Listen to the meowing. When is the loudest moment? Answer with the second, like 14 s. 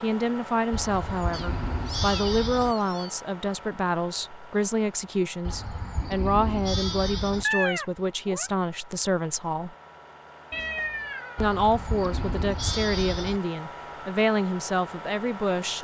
8 s.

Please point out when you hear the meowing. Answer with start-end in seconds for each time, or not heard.
1.3-3.1, 7.4-8.5, 10.5-11.6.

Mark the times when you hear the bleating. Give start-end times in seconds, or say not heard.
0.7-2.8, 5.5-7.5, 11.3-13.4.